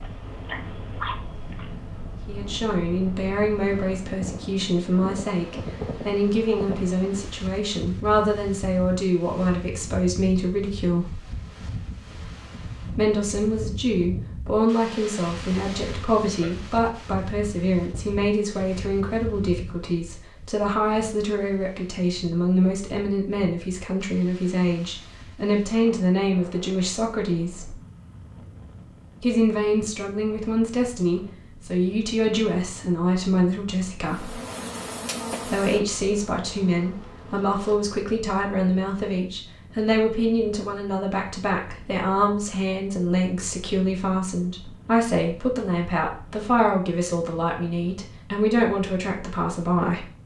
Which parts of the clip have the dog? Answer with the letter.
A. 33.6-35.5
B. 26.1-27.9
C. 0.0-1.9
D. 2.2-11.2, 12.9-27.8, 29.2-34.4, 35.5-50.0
C.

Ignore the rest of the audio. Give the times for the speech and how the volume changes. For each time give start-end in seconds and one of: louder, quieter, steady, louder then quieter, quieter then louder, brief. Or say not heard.
2.2-11.2 steady
12.9-27.8 steady
29.2-34.4 steady
35.5-50.0 steady.